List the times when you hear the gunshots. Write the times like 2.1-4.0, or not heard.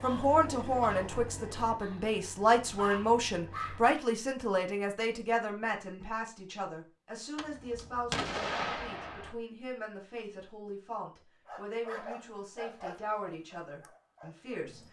7.3-9.3.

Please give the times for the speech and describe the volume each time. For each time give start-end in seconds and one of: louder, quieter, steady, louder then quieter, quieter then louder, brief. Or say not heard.
0.0-14.8 quieter.